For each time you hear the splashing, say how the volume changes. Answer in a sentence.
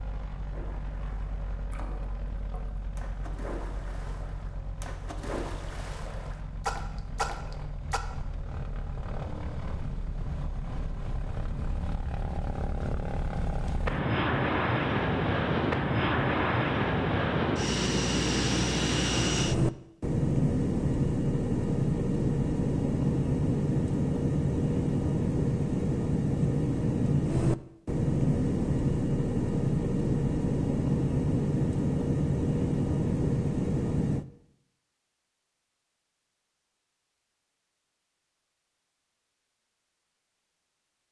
You can hear the splashing from 0.5 to 8.0 s, getting louder.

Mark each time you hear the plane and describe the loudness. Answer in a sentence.
You can hear the plane from 0.0 to 34.2 s, getting louder.